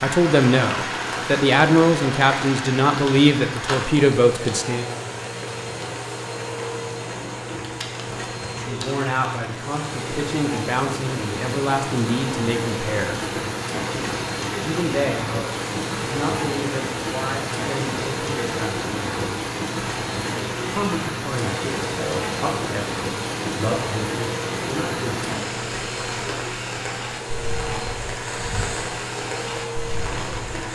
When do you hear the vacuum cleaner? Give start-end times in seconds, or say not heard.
0.1-30.6.